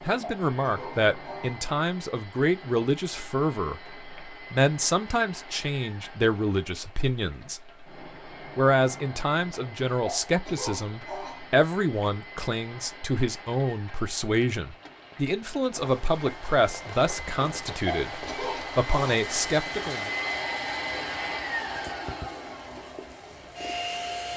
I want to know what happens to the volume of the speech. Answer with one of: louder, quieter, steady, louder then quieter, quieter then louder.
steady.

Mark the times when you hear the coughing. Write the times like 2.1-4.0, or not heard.
0.2-1.7, 10.1-11.6, 17.9-19.1.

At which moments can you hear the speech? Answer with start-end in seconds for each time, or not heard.
0.0-7.6, 8.6-20.1.